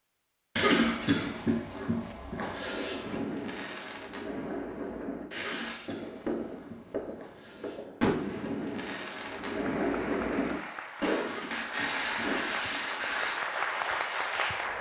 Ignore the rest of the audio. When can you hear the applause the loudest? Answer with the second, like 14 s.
14 s.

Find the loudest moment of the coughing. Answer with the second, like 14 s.
1 s.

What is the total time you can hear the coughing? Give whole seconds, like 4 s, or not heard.
6 s.